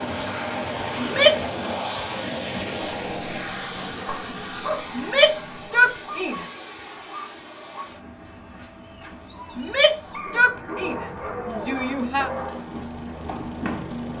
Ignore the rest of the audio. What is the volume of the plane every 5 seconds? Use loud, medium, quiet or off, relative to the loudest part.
loud, medium, medium.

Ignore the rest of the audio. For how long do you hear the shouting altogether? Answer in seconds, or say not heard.
5 s.